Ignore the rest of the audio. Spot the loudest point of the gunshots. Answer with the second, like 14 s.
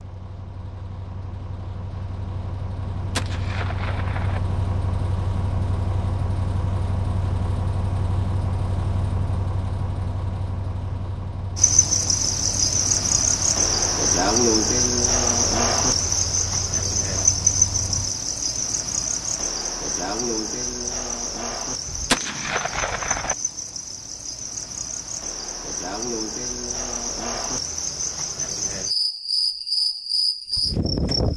22 s.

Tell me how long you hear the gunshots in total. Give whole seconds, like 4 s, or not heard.
3 s.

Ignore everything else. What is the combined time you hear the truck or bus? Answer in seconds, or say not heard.
18 s.